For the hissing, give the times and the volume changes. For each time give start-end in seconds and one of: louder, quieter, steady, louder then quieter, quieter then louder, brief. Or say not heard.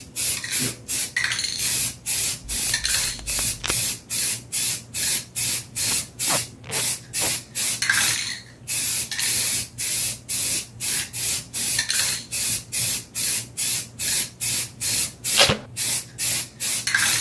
0.0-17.1 steady.